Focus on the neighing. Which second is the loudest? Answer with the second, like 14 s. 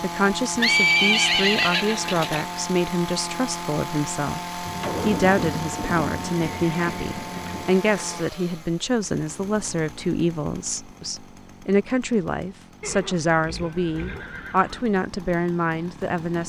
1 s.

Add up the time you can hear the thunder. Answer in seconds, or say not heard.
3 s.